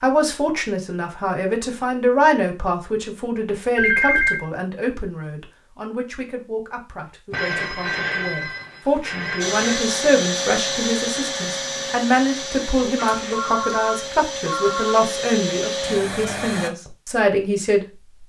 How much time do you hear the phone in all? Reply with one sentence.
You can hear the phone for 5 seconds altogether.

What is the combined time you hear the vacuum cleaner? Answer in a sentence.
The vacuum cleaner can be heard for 7 seconds in total.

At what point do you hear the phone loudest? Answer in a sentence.
The volume of the phone peaks at 4 seconds.